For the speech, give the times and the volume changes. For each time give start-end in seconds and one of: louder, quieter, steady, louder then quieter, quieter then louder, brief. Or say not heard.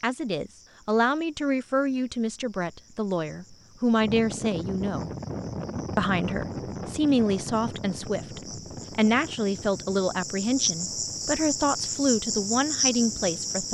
0.0-5.1 quieter then louder
6.0-13.6 steady.